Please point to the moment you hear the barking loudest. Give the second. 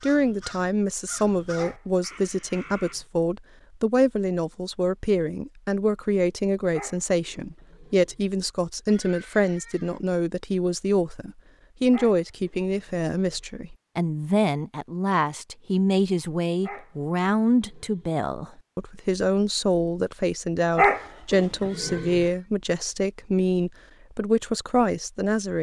21 s.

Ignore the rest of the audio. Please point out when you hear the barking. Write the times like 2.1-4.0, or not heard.
1.6-3.0, 6.7-8.2, 11.9-13.4, 16.6-18.1, 20.8-22.2.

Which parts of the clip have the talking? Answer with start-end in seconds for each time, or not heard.
0.0-25.5.